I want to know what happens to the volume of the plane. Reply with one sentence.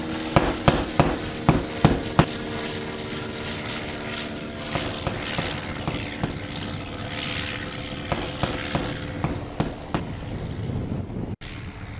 The volume of the plane stays about the same.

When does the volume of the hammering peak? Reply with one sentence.
The loudest moment of the hammering is at 1 second.